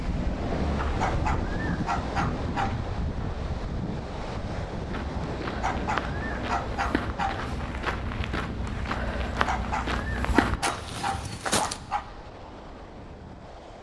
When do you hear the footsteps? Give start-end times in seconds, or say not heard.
4.9-11.8.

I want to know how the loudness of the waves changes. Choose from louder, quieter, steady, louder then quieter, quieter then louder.
quieter.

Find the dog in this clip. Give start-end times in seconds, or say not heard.
1.0-2.8, 5.6-7.3, 9.4-12.1.